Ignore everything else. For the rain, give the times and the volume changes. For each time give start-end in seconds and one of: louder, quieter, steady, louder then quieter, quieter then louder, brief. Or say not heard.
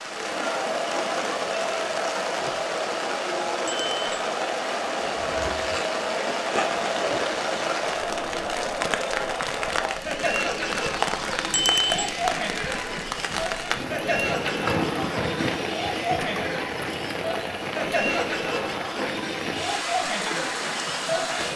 0.0-21.5 steady.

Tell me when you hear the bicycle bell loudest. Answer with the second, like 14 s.
12 s.